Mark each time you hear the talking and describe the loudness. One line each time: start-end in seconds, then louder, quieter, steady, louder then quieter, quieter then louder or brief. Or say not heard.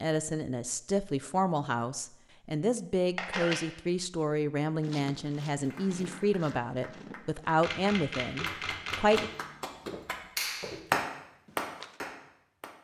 0.0-9.3 steady.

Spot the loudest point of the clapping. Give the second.
11 s.